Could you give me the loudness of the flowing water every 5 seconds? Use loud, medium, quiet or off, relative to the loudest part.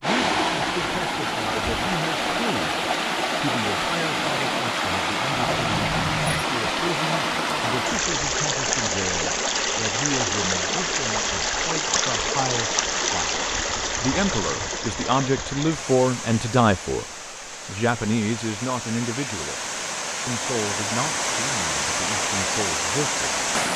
loud, loud, loud, medium, loud.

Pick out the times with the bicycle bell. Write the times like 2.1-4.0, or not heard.
5.3-6.5.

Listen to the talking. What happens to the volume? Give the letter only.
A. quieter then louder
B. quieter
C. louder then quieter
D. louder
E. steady
C.